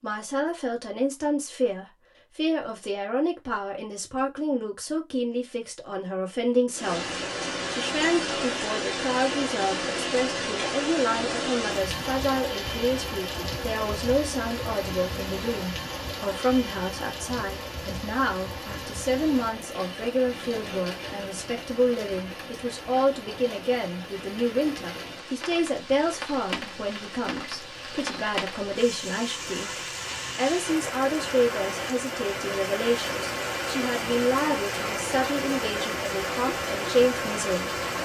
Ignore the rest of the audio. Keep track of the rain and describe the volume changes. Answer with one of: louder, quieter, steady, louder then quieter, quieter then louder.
quieter then louder.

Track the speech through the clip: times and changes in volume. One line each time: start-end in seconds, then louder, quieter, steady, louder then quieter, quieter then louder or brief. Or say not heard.
0.0-37.8 steady.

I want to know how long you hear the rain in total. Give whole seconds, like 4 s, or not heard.
31 s.